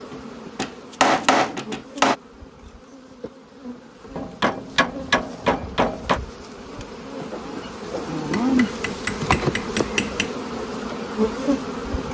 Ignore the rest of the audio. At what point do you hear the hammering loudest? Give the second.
1 s.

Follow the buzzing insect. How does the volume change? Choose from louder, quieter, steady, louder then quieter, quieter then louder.
louder.